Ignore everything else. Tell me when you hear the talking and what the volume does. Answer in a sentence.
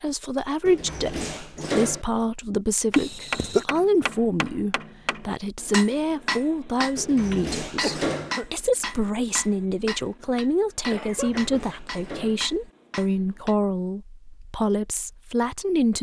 The talking can be heard from 0.0 to 15.9 s, at a steady volume.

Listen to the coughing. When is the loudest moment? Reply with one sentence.
The loudest moment of the coughing is at 3 seconds.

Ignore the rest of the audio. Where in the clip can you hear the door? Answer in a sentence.
You can hear the door from 0.7 to 2.0 s, from 7.0 to 8.3 s and from 11.1 to 12.4 s.